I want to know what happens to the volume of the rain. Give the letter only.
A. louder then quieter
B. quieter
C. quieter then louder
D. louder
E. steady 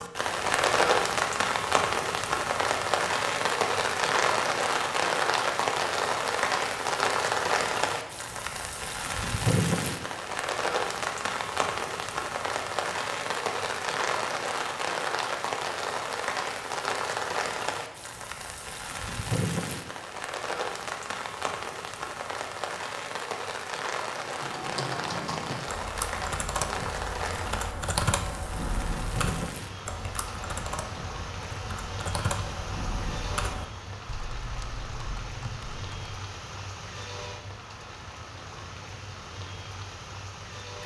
B.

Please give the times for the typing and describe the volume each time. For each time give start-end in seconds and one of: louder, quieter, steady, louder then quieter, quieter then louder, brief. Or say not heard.
24.1-36.0 quieter.